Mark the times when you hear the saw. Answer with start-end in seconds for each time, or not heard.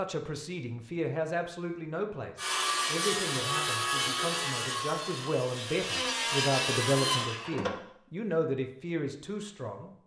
2.4-7.8.